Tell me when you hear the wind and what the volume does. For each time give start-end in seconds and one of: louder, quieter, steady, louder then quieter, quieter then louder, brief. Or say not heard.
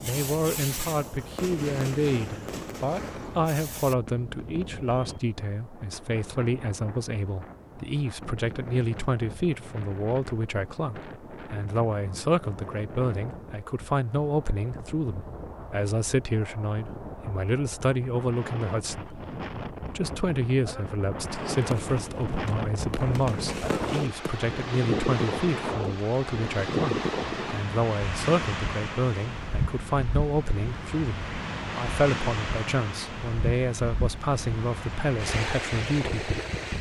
0.0-36.7 louder.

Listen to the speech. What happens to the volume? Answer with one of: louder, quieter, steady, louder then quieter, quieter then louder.
steady.